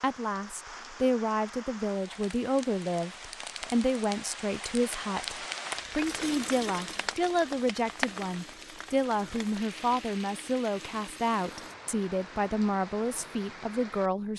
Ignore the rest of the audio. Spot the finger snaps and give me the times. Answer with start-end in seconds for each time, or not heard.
not heard.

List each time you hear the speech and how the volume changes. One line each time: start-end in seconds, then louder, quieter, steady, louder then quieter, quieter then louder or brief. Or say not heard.
0.0-14.3 steady.